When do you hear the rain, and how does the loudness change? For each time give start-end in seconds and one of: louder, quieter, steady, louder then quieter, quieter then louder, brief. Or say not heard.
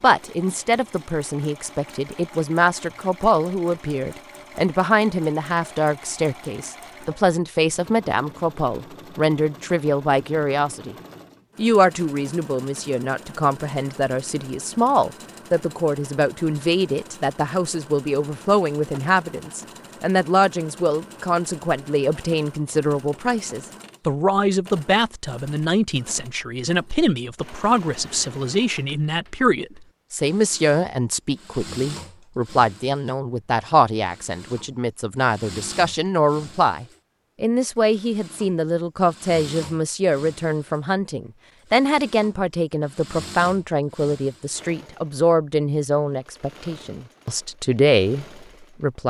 not heard.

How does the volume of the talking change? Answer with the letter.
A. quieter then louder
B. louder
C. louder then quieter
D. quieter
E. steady
E.